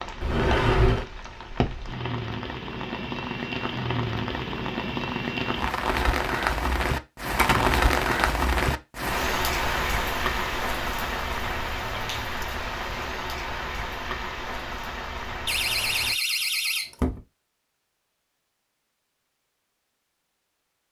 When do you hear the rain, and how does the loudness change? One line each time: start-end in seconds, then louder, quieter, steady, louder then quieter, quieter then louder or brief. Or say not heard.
0.0-16.1 louder then quieter.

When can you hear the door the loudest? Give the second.
1 s.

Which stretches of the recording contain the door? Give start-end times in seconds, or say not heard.
0.2-1.1, 7.3-8.2, 15.4-17.2.